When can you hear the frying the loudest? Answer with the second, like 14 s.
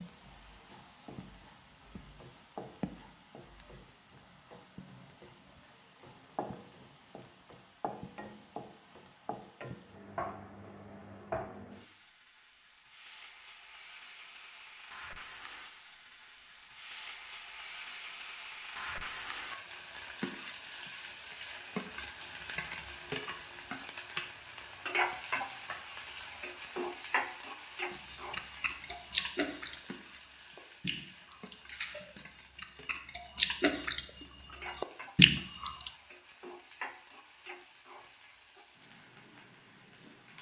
25 s.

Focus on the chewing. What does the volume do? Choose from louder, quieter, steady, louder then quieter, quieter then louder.
quieter then louder.